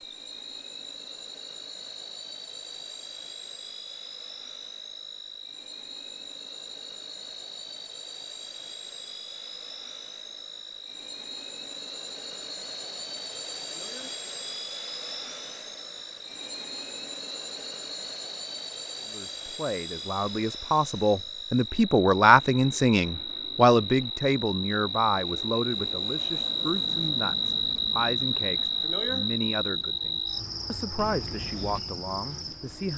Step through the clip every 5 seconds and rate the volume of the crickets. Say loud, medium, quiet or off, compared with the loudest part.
quiet, quiet, quiet, quiet, medium, loud, medium.